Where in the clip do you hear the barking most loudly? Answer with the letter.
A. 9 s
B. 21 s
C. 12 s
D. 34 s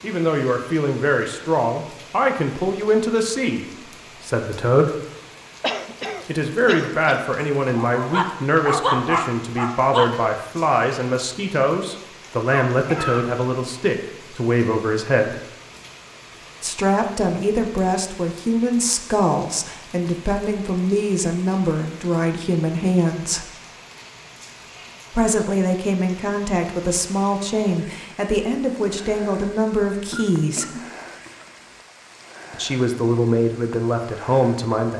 A.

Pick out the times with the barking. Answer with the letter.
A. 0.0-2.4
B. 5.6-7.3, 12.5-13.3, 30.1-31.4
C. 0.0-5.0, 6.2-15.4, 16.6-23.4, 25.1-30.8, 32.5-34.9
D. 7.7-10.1
D.